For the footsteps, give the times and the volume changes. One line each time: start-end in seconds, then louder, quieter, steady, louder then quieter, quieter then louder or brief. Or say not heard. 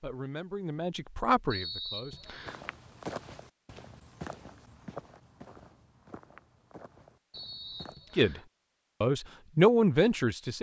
2.5-8.0 quieter.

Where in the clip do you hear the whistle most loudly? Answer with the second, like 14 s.
2 s.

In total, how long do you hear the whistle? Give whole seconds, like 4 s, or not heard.
2 s.